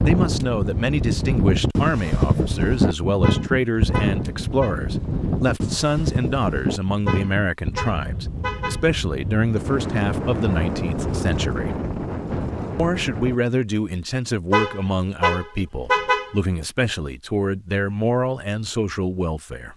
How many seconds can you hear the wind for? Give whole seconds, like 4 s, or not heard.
13 s.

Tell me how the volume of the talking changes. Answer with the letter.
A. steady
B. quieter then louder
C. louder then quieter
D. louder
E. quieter
A.